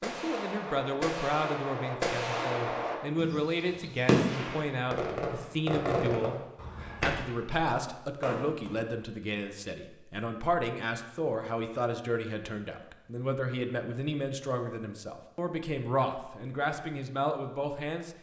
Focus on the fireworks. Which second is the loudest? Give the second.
4 s.